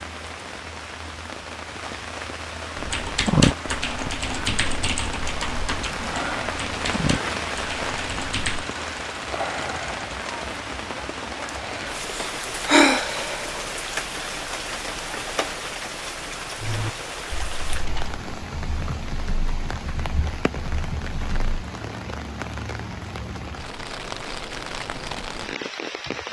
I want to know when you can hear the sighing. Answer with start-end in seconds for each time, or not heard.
12.1-13.6.